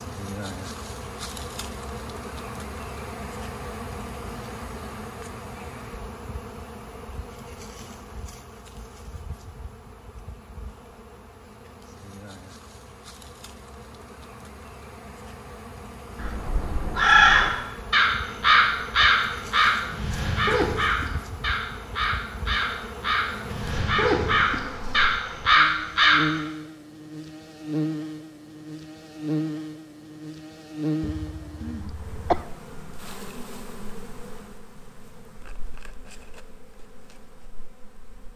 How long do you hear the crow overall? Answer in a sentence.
The crow can be heard for 10 seconds in total.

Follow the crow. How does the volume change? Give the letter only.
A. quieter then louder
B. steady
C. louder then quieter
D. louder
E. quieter
A.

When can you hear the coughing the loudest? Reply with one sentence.
The volume of the coughing peaks at 32 seconds.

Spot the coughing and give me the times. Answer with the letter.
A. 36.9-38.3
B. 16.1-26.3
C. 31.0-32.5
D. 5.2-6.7
C.